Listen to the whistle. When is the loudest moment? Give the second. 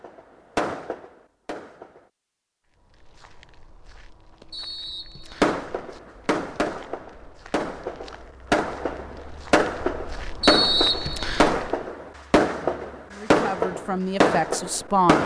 11 s.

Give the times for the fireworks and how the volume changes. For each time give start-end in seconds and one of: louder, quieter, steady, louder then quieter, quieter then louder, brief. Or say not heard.
0.0-2.1 brief
5.4-15.2 louder.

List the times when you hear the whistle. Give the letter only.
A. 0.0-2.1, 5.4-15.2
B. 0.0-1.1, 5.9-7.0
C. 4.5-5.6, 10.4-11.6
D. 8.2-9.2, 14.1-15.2
C.